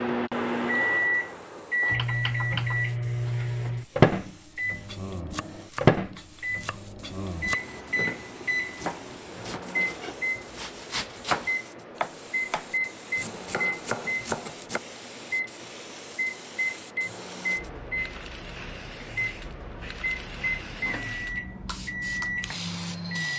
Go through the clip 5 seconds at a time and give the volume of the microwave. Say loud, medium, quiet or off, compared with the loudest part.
loud, loud, medium, medium, medium.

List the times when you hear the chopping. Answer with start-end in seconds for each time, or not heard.
4.8-14.8.